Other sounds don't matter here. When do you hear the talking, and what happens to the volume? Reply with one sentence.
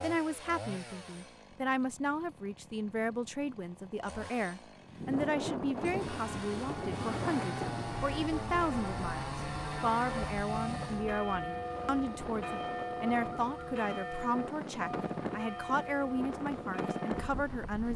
You can hear the talking from 0.0 to 17.9 s, at a steady volume.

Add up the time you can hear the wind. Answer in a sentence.
You can hear the wind for 13 seconds altogether.